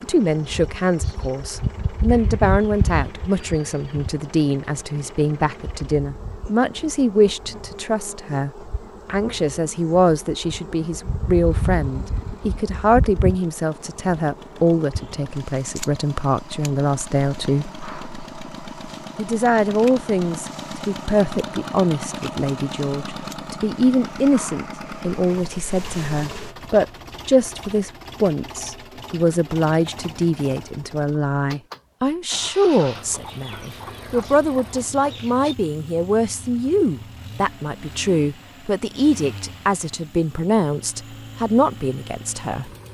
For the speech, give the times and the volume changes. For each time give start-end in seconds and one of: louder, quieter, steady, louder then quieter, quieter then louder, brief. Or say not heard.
0.0-17.7 steady
19.1-42.7 steady.